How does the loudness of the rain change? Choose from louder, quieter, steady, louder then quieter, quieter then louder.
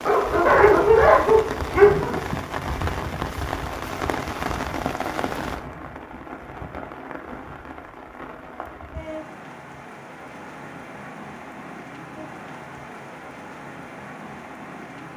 quieter.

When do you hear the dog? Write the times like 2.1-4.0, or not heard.
0.1-2.2.